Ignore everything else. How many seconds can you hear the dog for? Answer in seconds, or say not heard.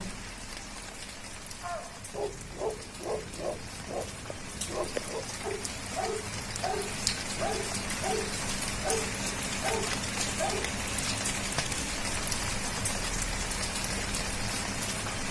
9 s.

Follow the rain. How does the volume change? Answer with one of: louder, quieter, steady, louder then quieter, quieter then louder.
louder.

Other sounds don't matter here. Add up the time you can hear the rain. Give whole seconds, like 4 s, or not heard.
15 s.